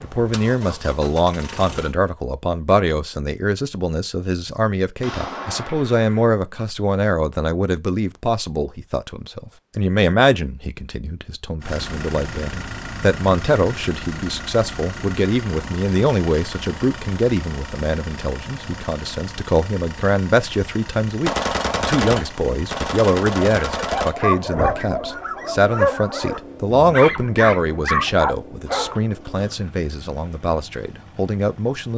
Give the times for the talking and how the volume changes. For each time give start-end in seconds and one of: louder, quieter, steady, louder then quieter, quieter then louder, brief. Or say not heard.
0.0-31.9 steady.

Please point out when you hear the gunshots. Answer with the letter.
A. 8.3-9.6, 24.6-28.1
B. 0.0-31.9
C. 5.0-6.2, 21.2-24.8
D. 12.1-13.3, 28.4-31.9
C.